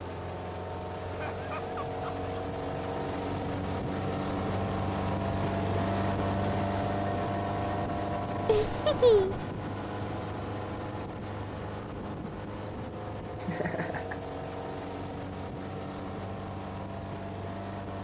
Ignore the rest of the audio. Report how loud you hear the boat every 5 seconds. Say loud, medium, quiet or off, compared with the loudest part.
loud, loud, medium, medium.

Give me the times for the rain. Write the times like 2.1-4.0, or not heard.
not heard.